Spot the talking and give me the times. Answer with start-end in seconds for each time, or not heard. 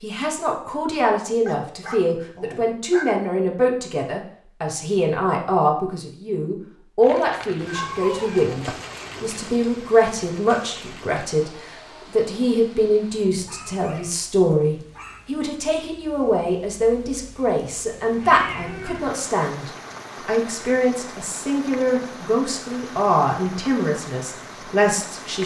0.0-25.4.